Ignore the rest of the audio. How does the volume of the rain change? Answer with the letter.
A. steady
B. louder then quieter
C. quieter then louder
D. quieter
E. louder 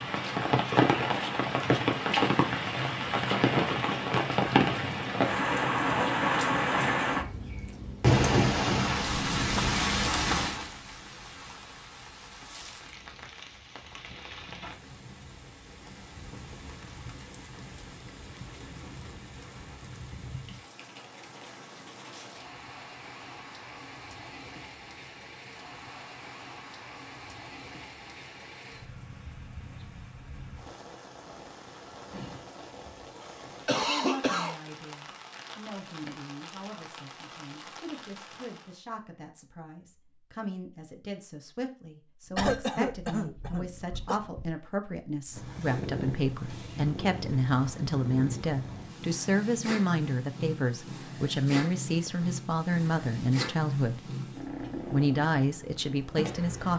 D.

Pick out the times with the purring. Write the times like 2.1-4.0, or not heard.
42.2-56.7.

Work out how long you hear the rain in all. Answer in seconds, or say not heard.
39 s.